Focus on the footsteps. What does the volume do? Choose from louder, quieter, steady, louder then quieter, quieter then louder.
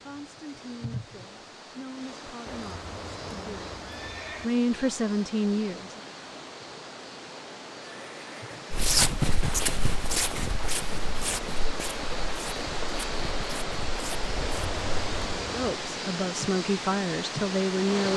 quieter.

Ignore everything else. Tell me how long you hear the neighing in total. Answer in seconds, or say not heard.
4 s.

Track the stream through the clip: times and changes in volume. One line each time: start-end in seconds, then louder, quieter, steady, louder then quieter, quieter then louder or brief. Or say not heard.
0.0-18.1 louder.